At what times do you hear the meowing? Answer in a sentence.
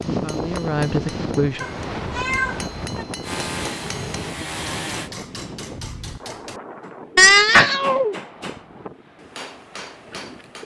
The meowing can be heard from 1.6 to 3.0 s and from 7.2 to 8.2 s.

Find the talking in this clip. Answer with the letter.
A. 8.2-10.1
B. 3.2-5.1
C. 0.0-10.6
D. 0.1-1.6
D.